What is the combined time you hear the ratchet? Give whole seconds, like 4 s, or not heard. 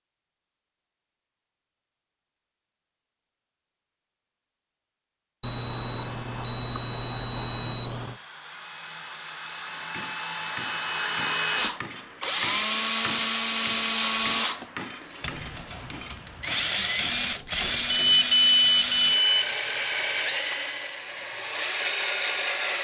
not heard.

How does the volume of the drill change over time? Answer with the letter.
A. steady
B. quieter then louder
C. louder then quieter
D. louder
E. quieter
D.